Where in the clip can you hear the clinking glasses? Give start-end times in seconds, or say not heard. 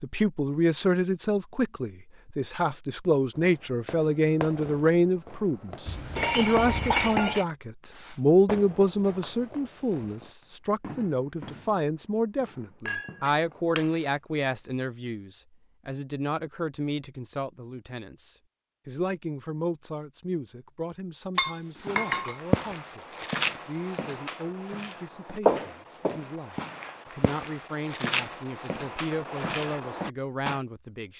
5.8-7.5, 12.8-13.9, 21.4-22.4.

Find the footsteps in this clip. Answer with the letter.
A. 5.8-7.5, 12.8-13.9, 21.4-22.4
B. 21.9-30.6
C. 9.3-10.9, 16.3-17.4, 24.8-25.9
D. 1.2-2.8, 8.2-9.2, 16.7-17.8
B.